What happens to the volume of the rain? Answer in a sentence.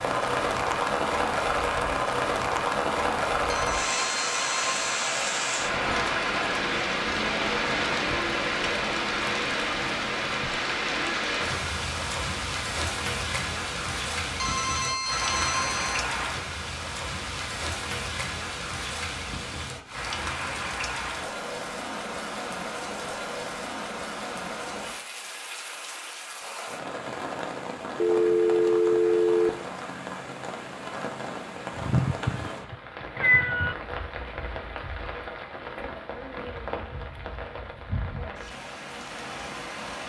The volume of the rain goes down.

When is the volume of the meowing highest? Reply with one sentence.
The loudest moment of the meowing is at 33 seconds.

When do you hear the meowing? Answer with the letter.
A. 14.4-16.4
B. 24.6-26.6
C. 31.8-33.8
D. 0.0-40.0
C.